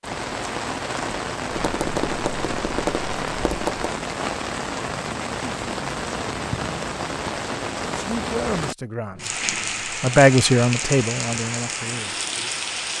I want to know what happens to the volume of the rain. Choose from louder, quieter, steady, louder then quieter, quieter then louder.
steady.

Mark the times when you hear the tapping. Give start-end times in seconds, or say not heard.
1.5-3.9.